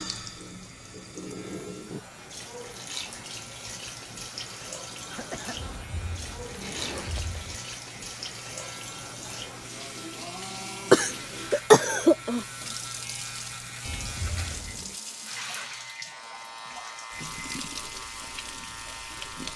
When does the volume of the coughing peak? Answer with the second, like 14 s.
12 s.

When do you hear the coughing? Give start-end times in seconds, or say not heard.
5.1-5.7, 10.9-12.4.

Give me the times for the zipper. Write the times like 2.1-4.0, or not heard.
5.5-7.6, 13.8-15.0.